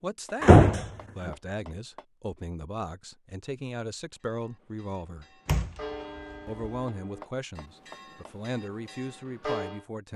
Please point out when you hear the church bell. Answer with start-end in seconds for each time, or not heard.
4.3-9.8.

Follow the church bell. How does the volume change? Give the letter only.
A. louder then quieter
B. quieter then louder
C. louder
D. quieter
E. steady
A.